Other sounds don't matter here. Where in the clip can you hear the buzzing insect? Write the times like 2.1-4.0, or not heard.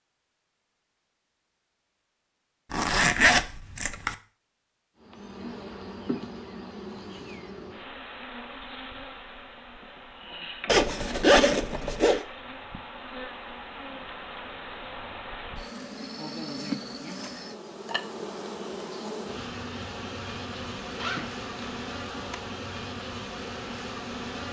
5.0-24.4.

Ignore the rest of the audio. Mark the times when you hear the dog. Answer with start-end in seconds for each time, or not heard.
not heard.